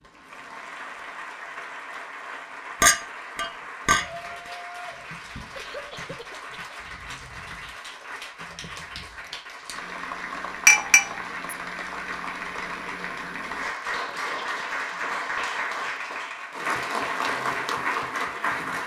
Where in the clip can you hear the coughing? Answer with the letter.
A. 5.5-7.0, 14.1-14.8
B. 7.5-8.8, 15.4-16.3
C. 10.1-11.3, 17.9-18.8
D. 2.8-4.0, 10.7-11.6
A.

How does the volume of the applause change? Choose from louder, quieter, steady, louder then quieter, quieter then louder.
louder.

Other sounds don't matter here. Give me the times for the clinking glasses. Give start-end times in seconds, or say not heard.
2.8-4.0, 10.7-11.6.